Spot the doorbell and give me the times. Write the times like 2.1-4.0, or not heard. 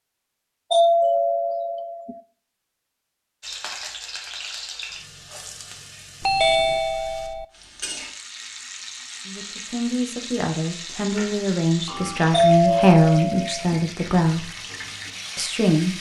0.7-2.2, 6.2-7.5, 12.3-13.8.